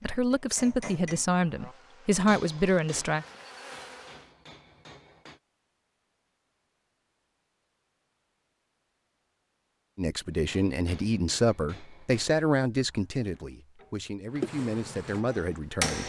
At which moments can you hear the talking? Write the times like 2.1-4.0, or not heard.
0.0-3.2, 9.9-16.0.